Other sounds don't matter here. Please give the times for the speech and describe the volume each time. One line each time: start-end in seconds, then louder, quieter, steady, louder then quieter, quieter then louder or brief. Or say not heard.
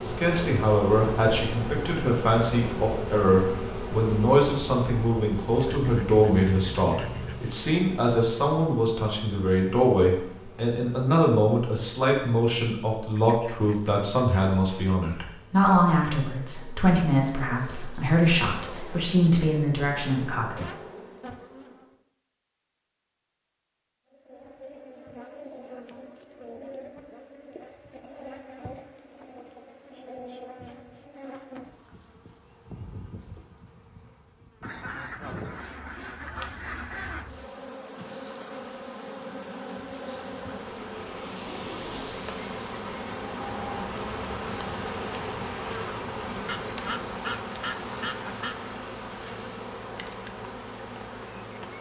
0.0-20.6 steady.